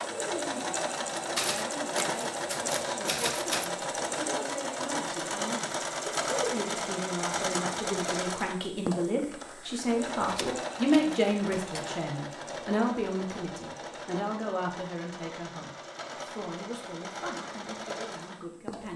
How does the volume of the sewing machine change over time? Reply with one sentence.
The volume of the sewing machine goes down.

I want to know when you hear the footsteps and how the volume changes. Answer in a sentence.
You can't hear the footsteps here.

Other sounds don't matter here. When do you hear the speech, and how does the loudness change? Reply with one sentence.
The speech can be heard from 0.2 to 18.9 s, getting louder then quieter.